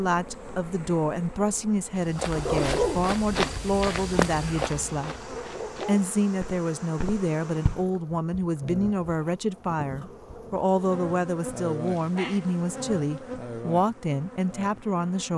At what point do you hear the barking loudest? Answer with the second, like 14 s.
3 s.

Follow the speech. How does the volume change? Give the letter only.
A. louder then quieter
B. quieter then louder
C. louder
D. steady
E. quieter
D.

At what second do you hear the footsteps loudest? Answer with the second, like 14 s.
4 s.